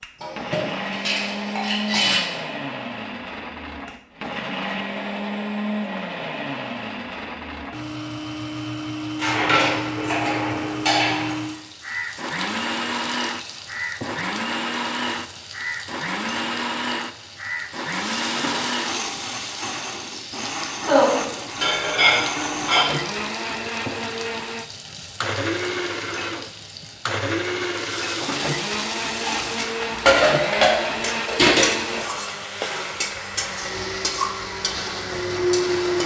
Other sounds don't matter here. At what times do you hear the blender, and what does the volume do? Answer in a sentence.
You can hear the blender from 0.0 to 36.0 s, at a steady volume.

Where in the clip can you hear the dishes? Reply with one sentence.
You can hear the dishes from 0.2 to 2.2 s, from 9.2 to 11.6 s, from 20.8 to 22.9 s and from 29.2 to 32.0 s.